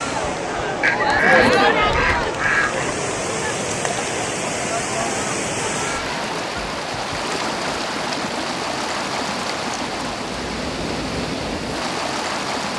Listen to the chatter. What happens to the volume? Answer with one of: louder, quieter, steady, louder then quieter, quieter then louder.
quieter.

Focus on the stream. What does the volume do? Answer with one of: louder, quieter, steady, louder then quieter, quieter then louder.
louder.